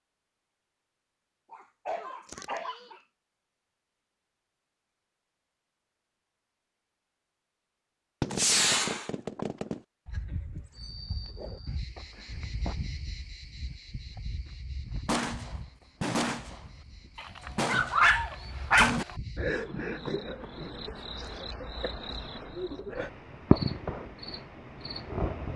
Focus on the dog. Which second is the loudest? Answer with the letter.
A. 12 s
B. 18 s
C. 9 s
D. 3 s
B.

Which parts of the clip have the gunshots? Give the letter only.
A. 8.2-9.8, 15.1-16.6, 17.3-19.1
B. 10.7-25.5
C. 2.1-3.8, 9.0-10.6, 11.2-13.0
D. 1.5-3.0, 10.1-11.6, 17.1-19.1
A.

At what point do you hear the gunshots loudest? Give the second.
9 s.